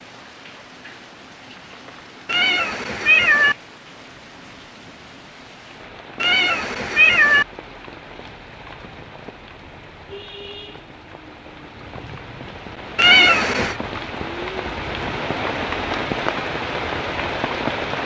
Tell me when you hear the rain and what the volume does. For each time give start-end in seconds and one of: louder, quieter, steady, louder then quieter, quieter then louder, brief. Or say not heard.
0.0-18.0 louder.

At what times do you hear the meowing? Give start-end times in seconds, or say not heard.
2.2-3.5, 6.2-7.5, 12.9-13.8.